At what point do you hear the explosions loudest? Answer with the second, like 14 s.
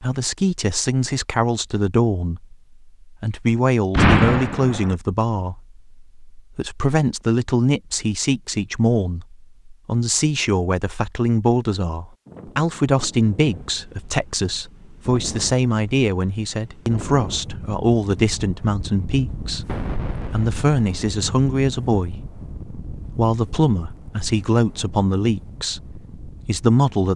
4 s.